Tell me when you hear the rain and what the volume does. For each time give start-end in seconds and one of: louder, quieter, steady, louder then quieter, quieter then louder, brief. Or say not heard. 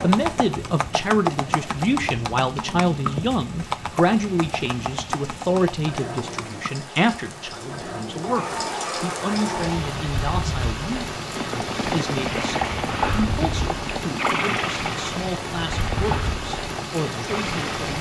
0.0-17.9 louder.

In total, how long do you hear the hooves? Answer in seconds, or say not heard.
14 s.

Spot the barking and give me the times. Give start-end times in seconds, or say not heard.
8.2-9.8.